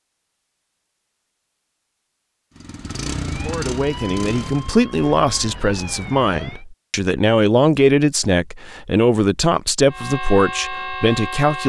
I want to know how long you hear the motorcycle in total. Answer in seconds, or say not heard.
2 s.